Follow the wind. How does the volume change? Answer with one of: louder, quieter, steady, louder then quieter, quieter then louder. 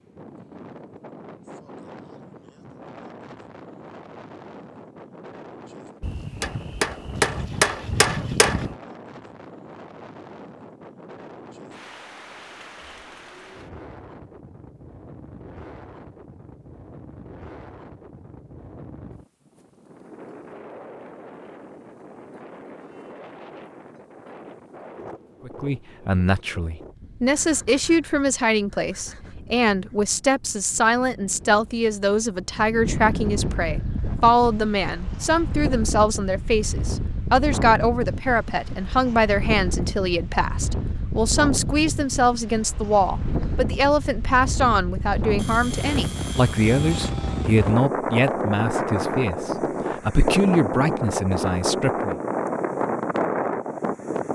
louder.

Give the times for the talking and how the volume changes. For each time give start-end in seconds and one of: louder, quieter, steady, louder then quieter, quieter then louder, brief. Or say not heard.
25.4-52.1 steady.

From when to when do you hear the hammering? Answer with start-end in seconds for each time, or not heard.
6.0-8.8.